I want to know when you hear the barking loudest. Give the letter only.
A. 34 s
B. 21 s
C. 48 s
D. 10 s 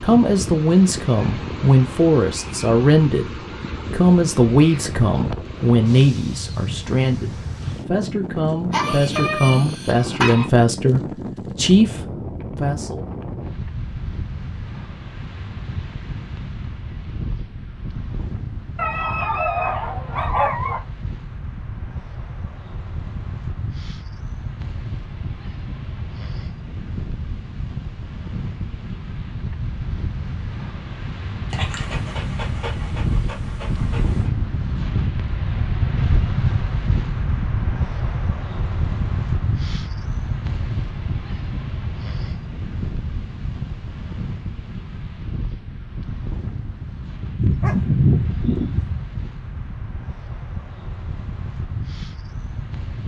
C.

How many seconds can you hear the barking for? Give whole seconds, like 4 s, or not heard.
8 s.